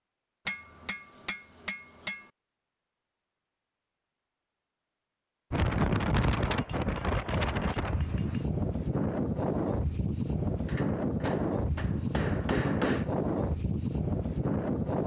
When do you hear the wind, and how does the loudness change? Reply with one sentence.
The wind can be heard from 5.5 to 15.0 s, at a steady volume.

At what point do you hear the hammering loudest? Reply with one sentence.
The loudest moment of the hammering is at 13 seconds.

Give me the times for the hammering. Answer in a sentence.
You can hear the hammering from 0.5 to 2.3 s, from 6.5 to 8.4 s and from 10.7 to 13.1 s.